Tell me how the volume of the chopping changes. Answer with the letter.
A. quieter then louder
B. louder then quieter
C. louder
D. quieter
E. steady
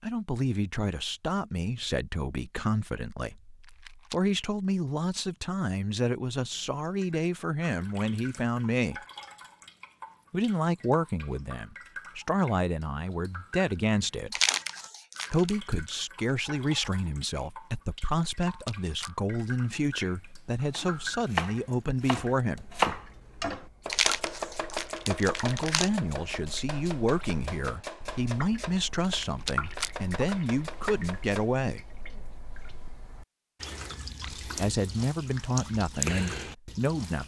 D.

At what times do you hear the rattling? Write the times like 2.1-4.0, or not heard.
3.6-4.2, 18.4-19.1, 29.0-29.9.